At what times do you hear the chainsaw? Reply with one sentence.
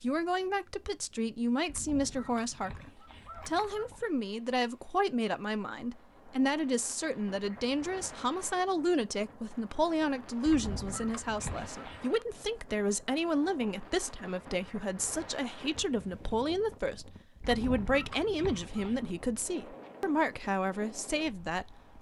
The chainsaw can't be heard in this clip.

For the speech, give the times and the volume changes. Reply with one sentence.
You can hear the speech from 0.0 to 21.9 s, at a steady volume.